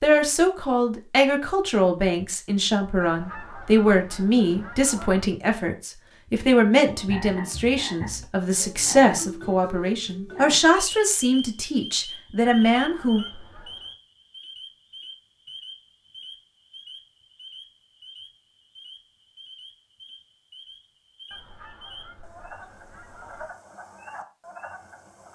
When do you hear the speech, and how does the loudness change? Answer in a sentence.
The speech can be heard from 0.0 to 13.2 s, at a steady volume.